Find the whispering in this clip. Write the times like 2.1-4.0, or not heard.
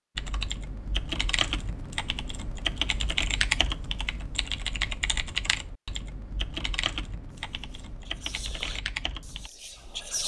7.5-10.2.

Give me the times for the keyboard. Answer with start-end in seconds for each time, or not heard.
0.1-9.5.